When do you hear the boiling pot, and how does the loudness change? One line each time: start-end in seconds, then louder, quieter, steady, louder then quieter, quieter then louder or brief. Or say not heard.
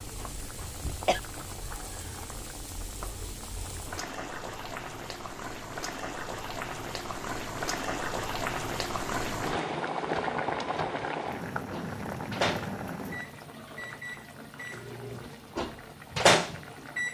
0.0-17.1 louder then quieter.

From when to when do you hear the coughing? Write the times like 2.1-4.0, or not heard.
0.2-1.2.